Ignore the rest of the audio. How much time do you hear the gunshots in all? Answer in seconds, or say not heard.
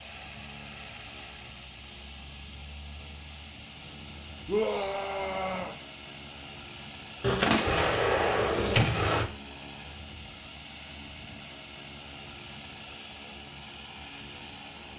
2 s.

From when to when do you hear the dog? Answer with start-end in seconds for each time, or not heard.
not heard.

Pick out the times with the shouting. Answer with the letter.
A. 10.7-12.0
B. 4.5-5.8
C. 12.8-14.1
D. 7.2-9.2
B.